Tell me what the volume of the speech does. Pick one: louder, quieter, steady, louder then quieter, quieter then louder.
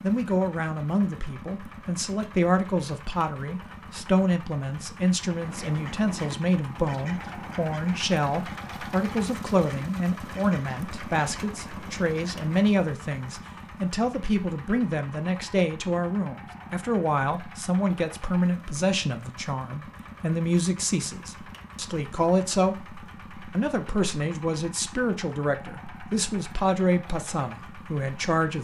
steady.